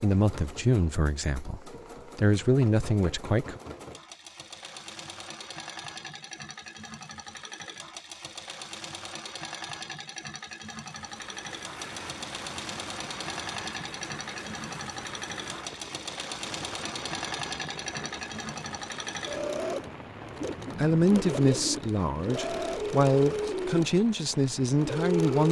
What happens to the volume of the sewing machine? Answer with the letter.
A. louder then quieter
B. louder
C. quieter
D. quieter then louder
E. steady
B.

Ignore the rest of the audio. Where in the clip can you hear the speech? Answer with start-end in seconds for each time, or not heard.
0.0-3.6, 20.8-25.4.